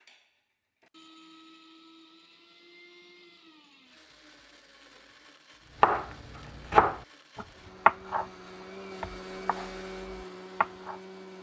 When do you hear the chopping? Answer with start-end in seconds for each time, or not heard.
5.8-8.2, 9.0-10.9.